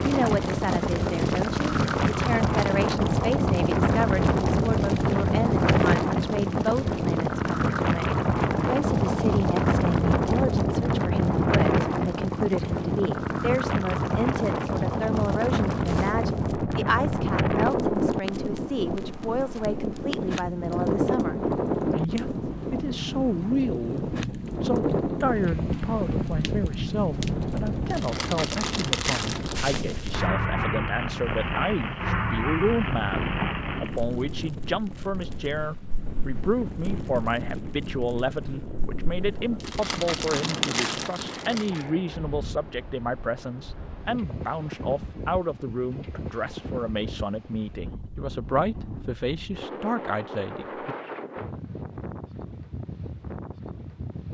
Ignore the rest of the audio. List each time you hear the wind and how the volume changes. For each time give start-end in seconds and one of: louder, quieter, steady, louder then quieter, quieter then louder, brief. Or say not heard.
0.0-54.2 quieter.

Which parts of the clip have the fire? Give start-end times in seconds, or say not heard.
0.0-41.9.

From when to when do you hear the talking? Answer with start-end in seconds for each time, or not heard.
0.0-51.0.